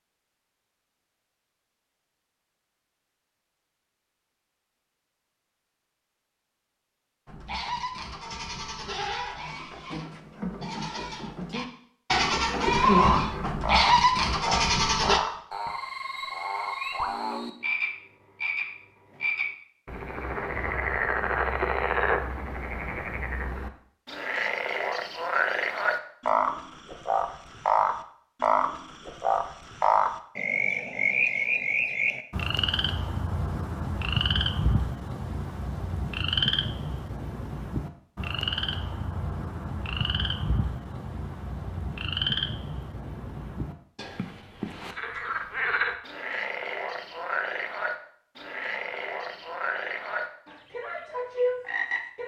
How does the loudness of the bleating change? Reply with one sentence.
The volume of the bleating goes up.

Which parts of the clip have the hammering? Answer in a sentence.
You can't hear the hammering here.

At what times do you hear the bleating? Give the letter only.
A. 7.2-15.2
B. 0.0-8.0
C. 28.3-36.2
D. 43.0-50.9
A.